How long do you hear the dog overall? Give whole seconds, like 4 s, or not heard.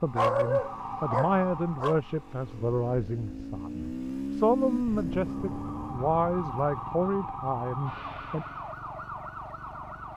2 s.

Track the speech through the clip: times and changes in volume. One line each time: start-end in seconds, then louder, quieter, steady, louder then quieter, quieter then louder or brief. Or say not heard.
0.0-8.4 steady.